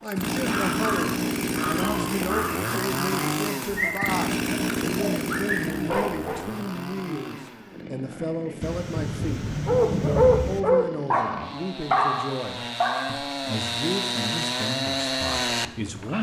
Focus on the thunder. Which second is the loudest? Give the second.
10 s.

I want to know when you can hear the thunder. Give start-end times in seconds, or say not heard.
8.6-10.6.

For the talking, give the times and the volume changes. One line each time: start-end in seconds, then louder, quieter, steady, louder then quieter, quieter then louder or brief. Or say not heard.
0.0-16.1 steady.